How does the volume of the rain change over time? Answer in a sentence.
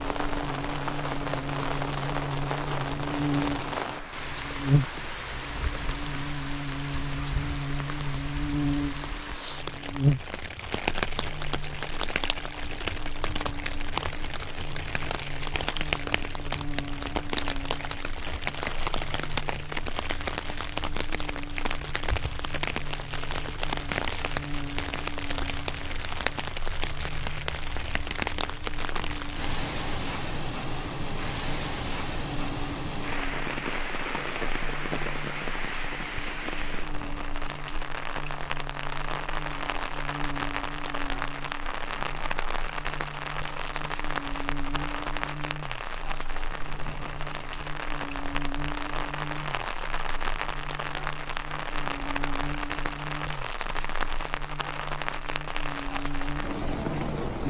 The loudness of the rain stays about the same.